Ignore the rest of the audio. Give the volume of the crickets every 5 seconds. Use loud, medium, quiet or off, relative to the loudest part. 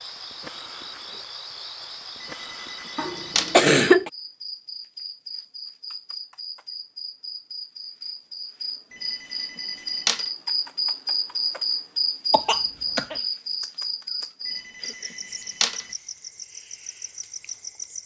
medium, medium, loud, medium.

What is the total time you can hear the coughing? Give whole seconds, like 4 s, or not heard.
2 s.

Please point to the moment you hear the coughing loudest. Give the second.
4 s.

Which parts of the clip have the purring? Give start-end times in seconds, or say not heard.
not heard.